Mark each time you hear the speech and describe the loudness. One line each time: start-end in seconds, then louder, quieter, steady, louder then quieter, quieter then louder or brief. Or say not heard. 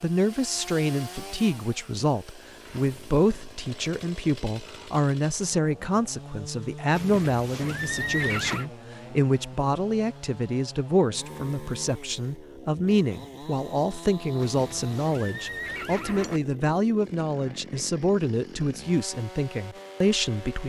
0.0-20.6 steady.